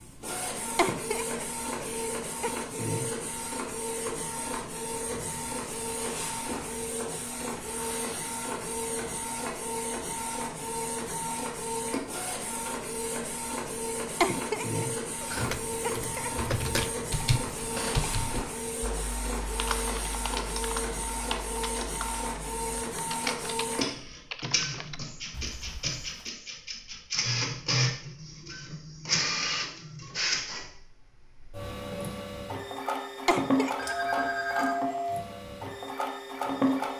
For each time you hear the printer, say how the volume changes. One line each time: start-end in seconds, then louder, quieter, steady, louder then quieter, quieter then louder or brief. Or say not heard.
0.0-36.9 steady.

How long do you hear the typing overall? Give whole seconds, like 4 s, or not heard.
11 s.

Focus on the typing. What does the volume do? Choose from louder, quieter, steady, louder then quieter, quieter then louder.
quieter.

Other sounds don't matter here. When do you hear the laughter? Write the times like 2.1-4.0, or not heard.
0.8-2.5, 14.2-16.5, 33.2-34.0.